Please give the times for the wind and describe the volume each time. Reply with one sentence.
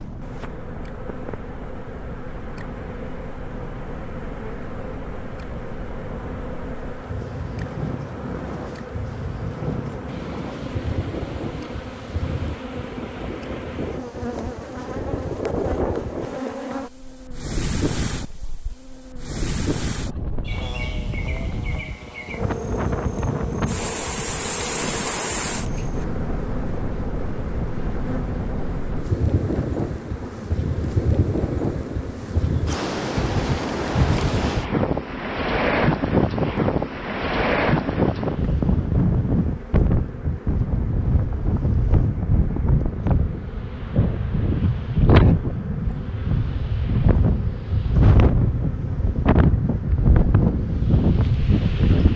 You can hear the wind from 0.0 to 52.1 s, getting louder.